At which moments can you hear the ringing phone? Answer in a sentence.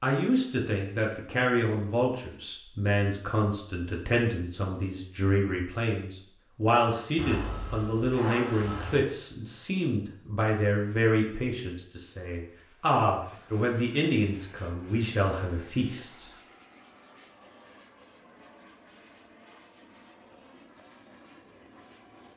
You can hear the ringing phone from 7.2 to 9.1 s.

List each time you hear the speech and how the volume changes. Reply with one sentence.
The speech can be heard from 0.0 to 16.3 s, at a steady volume.